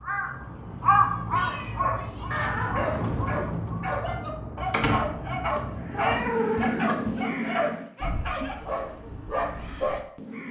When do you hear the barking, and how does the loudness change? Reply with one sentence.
The barking can be heard from 1.4 to 10.0 s, at a steady volume.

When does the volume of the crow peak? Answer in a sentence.
The volume of the crow peaks at 1 second.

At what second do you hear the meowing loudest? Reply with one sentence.
The loudest moment of the meowing is at 6 seconds.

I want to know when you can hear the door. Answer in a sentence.
You can hear the door from 4.7 to 5.6 s.